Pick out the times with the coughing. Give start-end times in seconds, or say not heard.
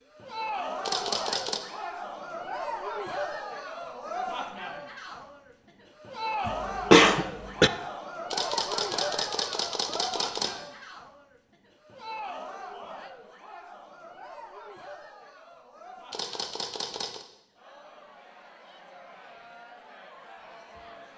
6.5-7.7.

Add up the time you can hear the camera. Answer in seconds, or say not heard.
4 s.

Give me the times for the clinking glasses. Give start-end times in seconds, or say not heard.
not heard.